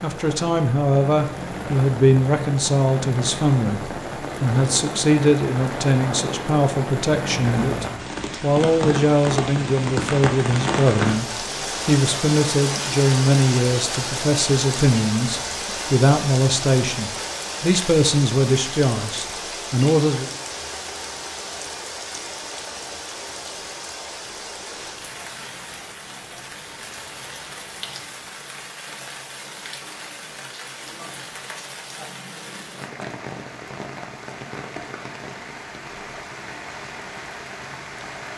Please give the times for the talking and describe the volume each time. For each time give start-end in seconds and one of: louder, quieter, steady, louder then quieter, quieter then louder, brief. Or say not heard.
0.0-20.3 steady.